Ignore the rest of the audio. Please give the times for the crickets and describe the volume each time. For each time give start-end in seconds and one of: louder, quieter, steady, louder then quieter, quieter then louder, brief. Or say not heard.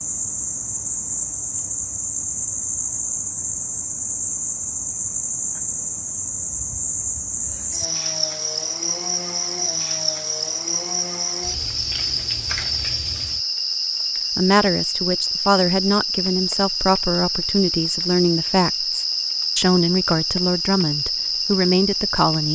0.0-22.5 steady.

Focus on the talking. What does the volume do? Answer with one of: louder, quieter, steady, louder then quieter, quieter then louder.
steady.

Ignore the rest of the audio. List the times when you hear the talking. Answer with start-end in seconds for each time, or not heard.
14.3-22.5.